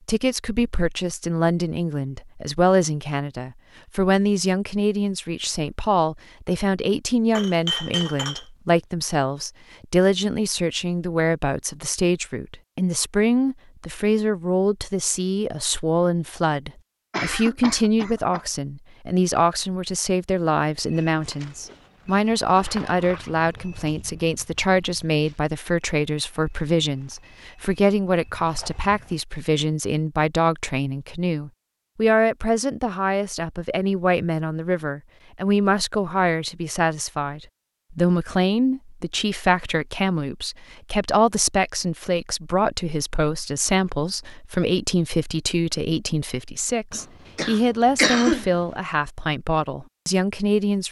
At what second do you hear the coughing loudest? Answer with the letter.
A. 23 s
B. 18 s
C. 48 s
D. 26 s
C.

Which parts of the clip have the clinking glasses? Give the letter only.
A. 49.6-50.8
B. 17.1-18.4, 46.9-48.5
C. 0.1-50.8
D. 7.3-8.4
D.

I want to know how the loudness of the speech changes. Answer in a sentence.
The loudness of the speech stays about the same.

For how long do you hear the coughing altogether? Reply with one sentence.
You can hear the coughing for 3 seconds altogether.